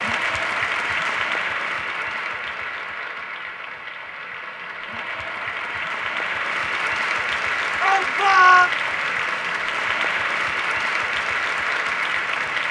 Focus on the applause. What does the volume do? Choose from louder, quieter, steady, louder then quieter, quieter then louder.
quieter then louder.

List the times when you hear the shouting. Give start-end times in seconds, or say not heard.
7.8-8.7.